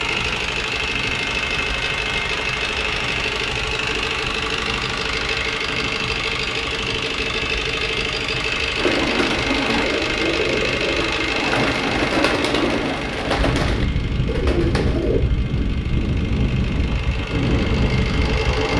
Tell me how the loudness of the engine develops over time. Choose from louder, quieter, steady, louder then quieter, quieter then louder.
quieter.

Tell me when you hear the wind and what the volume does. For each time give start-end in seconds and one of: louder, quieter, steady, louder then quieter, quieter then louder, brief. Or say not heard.
0.0-18.7 louder.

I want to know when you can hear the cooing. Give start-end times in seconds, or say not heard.
8.8-15.2.